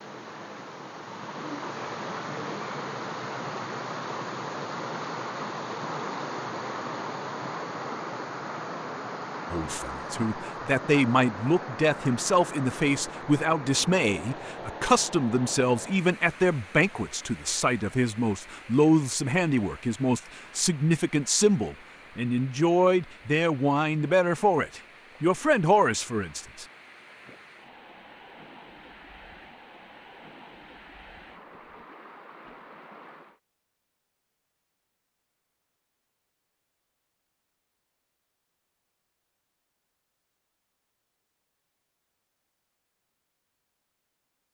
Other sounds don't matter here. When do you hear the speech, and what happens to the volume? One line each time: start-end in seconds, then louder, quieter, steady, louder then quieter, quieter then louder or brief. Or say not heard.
9.5-26.6 steady.